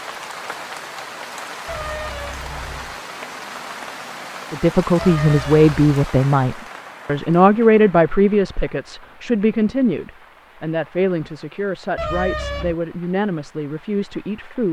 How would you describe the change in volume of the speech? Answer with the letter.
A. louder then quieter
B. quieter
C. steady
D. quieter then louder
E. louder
B.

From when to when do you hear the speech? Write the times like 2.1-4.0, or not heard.
4.5-14.6.